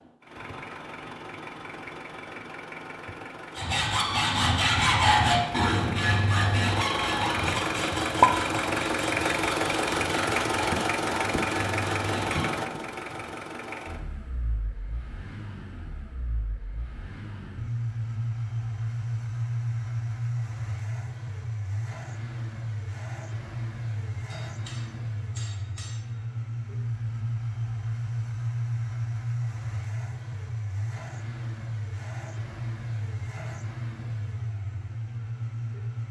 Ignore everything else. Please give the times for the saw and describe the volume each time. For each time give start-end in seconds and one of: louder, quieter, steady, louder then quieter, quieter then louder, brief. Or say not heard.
3.5-12.5 quieter.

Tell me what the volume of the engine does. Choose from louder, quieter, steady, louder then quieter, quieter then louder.
louder then quieter.